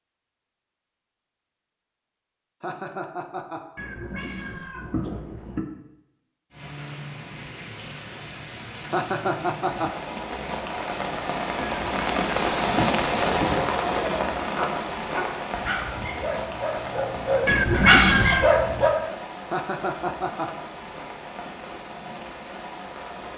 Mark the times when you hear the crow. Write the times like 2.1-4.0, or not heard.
not heard.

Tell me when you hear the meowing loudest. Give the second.
18 s.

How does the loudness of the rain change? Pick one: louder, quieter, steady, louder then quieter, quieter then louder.
louder then quieter.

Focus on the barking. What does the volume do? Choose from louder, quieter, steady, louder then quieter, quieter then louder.
louder.